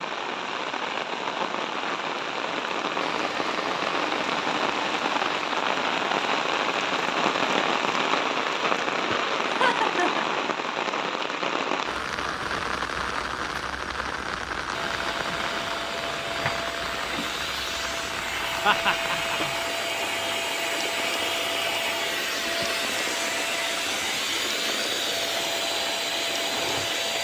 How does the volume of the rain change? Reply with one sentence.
The loudness of the rain goes down.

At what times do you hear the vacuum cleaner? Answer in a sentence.
The vacuum cleaner can be heard from 3.0 to 5.6 s and from 14.7 to 27.1 s.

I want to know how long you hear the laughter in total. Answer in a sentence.
The laughter can be heard for 2 seconds in total.